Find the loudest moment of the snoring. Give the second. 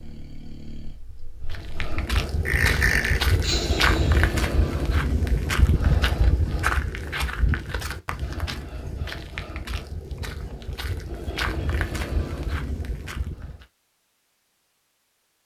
3 s.